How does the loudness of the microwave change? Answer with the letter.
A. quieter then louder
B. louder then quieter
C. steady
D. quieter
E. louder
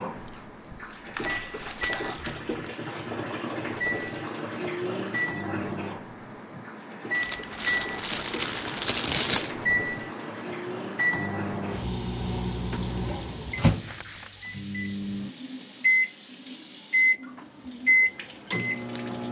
E.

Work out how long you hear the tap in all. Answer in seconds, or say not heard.
19 s.